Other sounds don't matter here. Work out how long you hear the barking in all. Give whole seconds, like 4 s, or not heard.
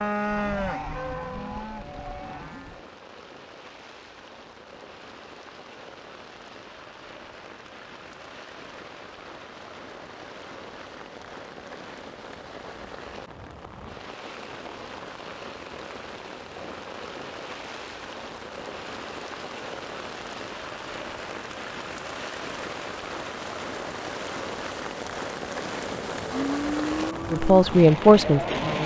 not heard.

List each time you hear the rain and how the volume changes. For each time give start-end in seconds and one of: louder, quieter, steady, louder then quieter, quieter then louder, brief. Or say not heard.
0.0-28.8 louder.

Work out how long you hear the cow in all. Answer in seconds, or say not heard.
6 s.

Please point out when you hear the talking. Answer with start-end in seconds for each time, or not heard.
27.3-28.8.